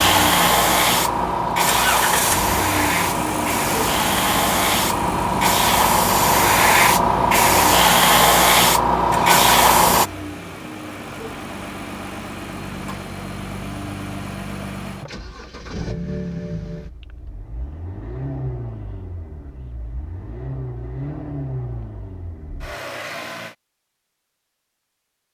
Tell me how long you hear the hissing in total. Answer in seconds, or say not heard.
10 s.